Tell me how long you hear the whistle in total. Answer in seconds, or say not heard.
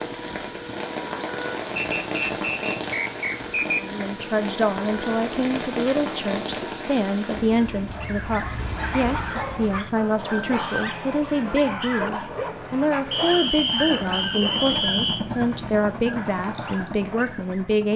4 s.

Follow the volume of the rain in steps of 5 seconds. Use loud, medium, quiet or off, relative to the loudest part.
loud, loud, off, off.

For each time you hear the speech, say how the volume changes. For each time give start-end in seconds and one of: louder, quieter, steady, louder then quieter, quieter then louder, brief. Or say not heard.
3.8-17.9 steady.